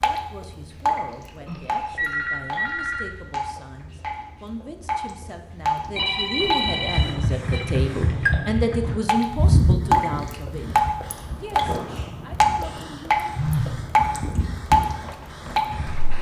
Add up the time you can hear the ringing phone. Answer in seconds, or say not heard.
4 s.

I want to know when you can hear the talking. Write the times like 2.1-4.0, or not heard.
0.0-13.2.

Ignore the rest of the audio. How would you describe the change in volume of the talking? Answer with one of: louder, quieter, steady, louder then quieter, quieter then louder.
louder then quieter.